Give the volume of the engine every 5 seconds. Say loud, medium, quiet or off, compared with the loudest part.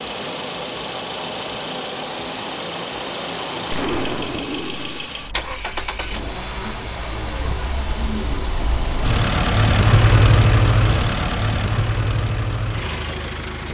medium, loud, loud.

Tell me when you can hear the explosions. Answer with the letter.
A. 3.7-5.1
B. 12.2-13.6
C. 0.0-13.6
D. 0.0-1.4
A.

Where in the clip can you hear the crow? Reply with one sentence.
You can't hear the crow here.